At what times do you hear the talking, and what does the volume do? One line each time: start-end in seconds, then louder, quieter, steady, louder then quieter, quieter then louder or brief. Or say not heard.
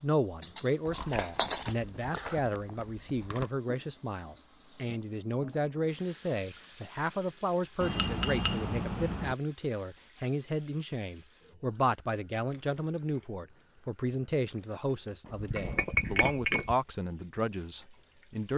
0.0-18.5 steady.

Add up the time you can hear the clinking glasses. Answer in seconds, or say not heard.
5 s.